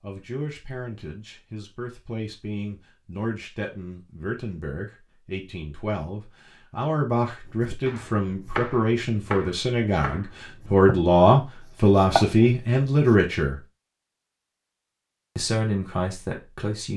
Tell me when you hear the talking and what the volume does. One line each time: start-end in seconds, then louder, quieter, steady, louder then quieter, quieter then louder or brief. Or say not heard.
0.0-13.6 louder
15.3-16.9 brief.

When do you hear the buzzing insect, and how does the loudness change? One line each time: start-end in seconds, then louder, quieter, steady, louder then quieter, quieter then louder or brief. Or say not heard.
not heard.